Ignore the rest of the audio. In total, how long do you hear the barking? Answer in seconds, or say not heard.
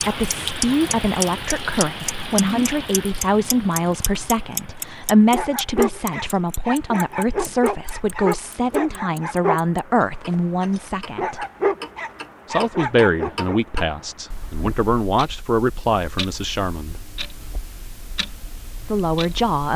8 s.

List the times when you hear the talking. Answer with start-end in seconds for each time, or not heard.
0.0-11.4, 12.5-17.0, 18.9-19.7.